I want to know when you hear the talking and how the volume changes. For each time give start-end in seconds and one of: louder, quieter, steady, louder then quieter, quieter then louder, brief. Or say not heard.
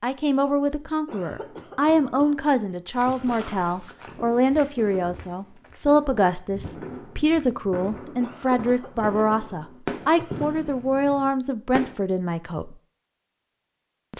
0.0-12.8 steady.